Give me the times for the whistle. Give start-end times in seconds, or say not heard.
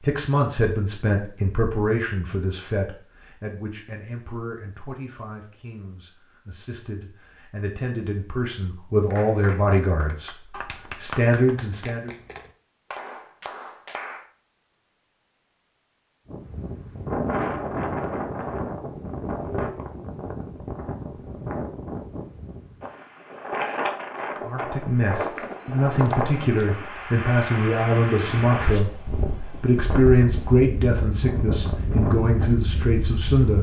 not heard.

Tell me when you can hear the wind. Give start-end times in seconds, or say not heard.
16.3-33.5.